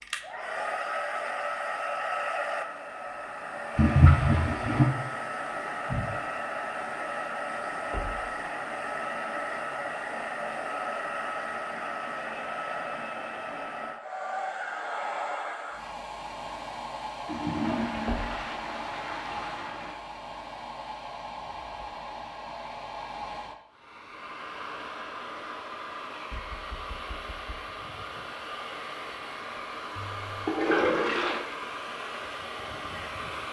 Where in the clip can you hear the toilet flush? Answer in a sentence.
You can hear the toilet flush from 3.8 to 4.9 s, from 17.2 to 20.0 s and from 29.9 to 31.4 s.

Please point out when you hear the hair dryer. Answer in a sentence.
The hair dryer can be heard from 0.0 to 33.4 s.